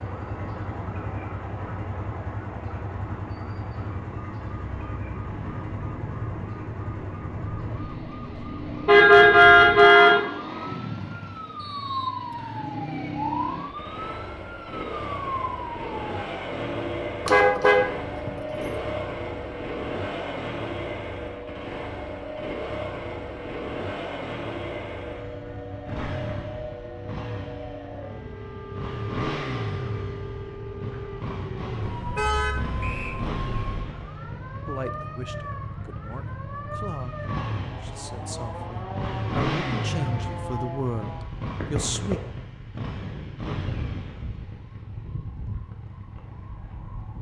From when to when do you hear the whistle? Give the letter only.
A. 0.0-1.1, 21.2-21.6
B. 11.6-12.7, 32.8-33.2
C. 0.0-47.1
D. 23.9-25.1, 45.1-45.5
B.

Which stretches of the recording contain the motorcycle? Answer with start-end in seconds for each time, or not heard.
0.0-47.1.